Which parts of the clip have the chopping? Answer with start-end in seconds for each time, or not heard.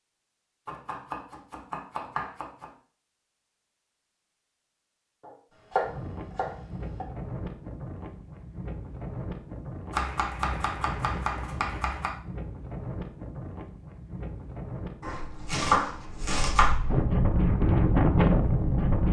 0.7-2.7, 5.2-7.0, 9.9-12.1, 15.0-16.8.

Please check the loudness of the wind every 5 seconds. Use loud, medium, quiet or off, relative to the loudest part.
off, quiet, quiet, loud.